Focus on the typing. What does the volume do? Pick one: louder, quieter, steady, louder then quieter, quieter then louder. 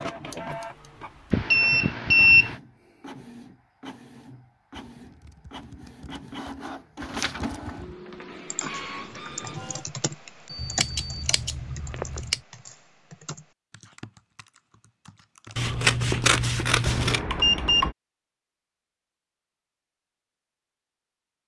louder then quieter.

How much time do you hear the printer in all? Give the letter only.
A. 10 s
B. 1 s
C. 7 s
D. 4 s
A.